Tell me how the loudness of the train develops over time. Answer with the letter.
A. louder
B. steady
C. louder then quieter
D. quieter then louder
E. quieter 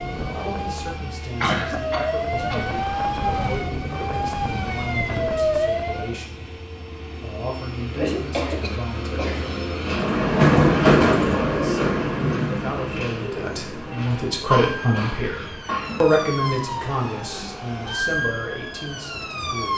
C.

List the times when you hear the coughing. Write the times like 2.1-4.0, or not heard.
1.4-2.6, 8.0-9.6, 14.5-15.9.